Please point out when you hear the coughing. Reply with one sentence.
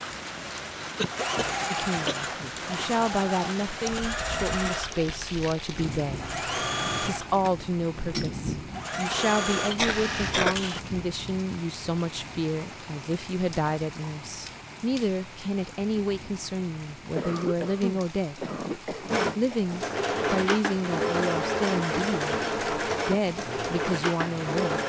The coughing can be heard from 0.9 to 2.5 s, from 9.8 to 10.6 s and from 17.1 to 19.4 s.